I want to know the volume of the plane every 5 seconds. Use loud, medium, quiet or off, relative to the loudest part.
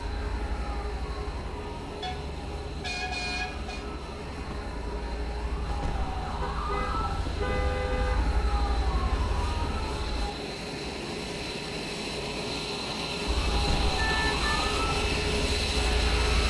medium, medium, loud, loud.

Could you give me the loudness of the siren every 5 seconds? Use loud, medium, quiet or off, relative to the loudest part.
medium, loud, loud, loud.